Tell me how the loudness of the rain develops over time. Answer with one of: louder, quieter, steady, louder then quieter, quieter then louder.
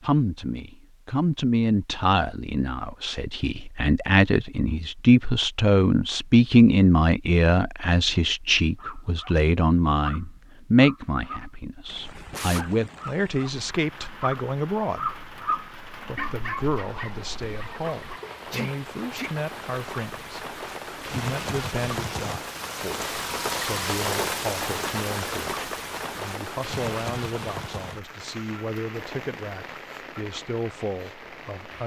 louder then quieter.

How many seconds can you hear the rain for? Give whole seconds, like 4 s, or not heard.
20 s.